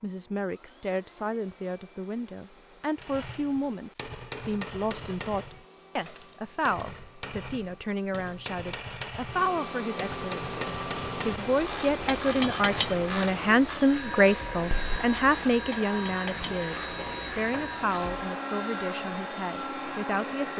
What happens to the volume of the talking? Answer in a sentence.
The loudness of the talking goes up, then down.